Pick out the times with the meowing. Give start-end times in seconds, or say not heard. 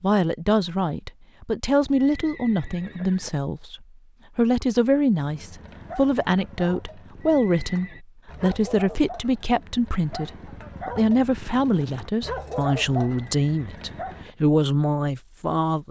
not heard.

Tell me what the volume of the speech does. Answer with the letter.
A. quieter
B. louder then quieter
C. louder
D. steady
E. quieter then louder
D.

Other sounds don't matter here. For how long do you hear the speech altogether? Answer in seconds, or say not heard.
16 s.